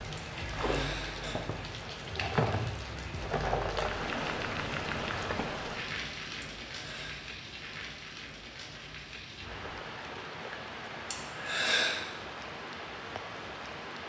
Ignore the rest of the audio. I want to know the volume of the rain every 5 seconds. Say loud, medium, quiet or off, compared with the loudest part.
loud, medium, medium.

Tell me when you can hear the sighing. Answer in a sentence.
You can hear the sighing from 0.1 to 1.4 s, from 6.4 to 7.2 s and from 11.1 to 11.9 s.